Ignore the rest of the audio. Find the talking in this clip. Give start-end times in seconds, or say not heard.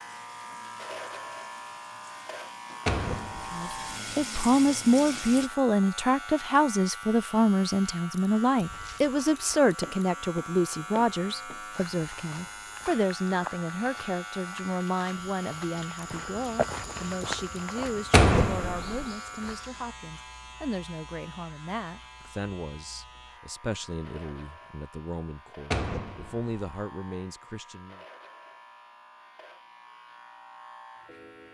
3.5-28.0.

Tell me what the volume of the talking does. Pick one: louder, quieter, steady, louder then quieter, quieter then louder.
quieter.